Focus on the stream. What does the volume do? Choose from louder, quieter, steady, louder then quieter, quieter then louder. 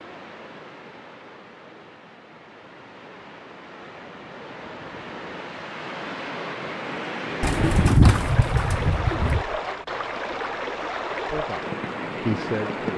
louder.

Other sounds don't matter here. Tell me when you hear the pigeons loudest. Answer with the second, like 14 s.
8 s.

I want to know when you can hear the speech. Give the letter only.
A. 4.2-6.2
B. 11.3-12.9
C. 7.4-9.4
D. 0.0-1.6
B.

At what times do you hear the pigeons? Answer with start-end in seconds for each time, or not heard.
7.4-9.4.